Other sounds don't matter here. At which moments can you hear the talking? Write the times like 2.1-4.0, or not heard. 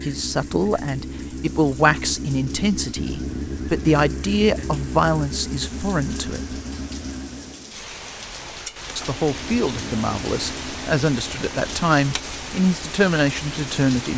0.0-6.5, 8.9-14.1.